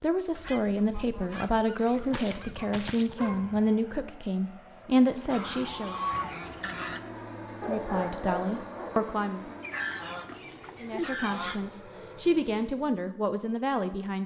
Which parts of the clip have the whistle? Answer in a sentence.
You can't hear the whistle here.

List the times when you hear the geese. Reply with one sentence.
You can hear the geese from 0.3 to 3.1 s, from 5.3 to 7.0 s and from 9.6 to 11.6 s.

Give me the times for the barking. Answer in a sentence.
The barking can be heard from 2.0 to 3.7 s and from 7.6 to 9.1 s.